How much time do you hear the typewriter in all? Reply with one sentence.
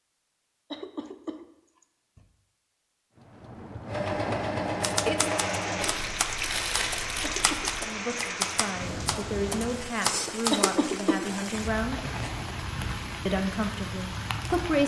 The typewriter can be heard for 6 seconds in total.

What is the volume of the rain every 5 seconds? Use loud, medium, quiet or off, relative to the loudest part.
medium, loud, loud.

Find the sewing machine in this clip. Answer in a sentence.
You can hear the sewing machine from 3.9 to 6.0 s.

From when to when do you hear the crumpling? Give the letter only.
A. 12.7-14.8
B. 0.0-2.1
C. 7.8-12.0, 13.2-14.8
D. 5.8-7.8
D.